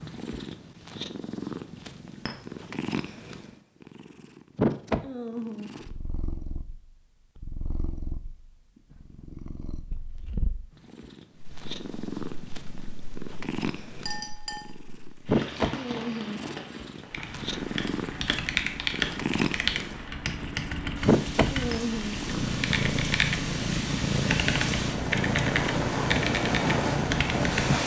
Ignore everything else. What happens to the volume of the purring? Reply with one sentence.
The volume of the purring goes down, then up.